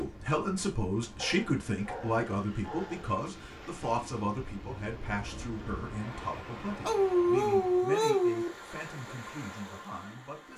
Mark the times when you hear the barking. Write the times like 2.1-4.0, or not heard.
1.2-3.0, 6.8-8.5.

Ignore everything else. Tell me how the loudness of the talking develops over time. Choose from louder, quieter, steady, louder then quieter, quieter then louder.
quieter.